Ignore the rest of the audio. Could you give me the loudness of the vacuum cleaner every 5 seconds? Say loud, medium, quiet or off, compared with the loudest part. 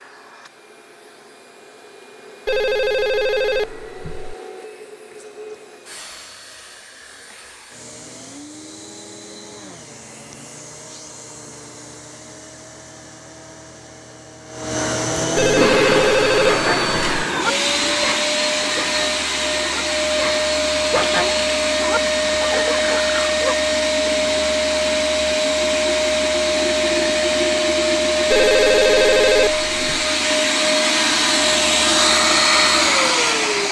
quiet, quiet, quiet, loud, loud, loud, loud.